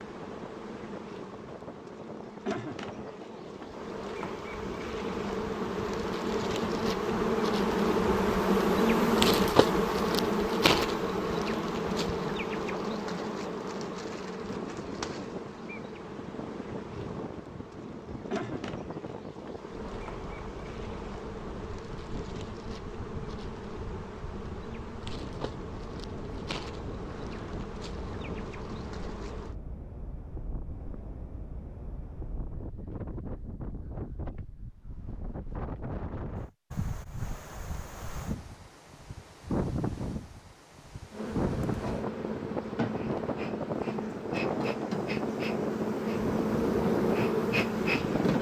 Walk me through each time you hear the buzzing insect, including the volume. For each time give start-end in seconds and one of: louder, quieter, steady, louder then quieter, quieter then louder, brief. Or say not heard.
0.0-29.6 louder then quieter
41.1-48.3 louder.